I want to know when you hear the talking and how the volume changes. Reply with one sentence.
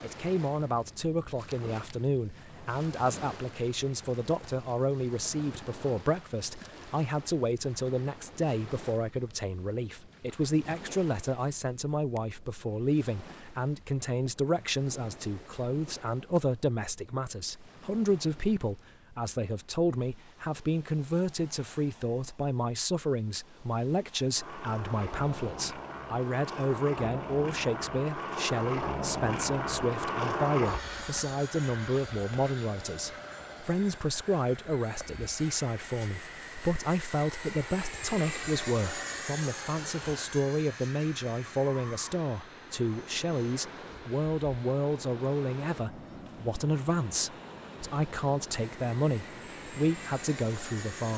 You can hear the talking from 0.0 to 51.1 s, at a steady volume.